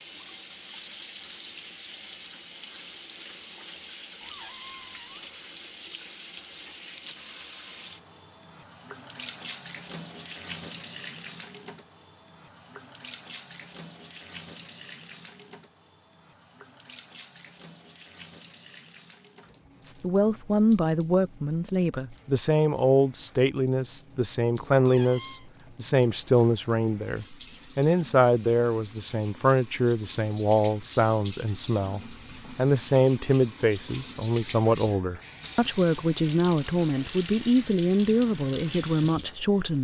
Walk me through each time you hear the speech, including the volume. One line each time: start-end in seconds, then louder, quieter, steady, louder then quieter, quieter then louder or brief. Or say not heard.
19.8-39.7 steady.